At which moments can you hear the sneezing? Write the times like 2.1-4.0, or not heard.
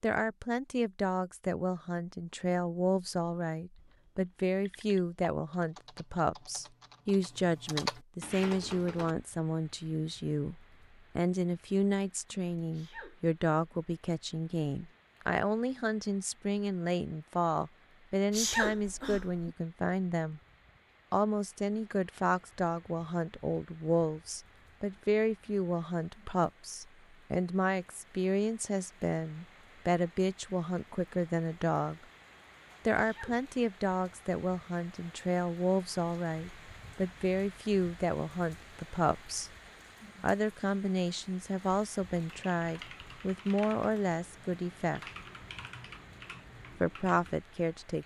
12.7-13.3, 18.3-19.6, 33.0-33.5.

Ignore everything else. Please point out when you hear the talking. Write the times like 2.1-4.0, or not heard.
0.0-20.4, 21.1-32.0, 32.9-39.5, 40.2-45.0, 46.8-48.0.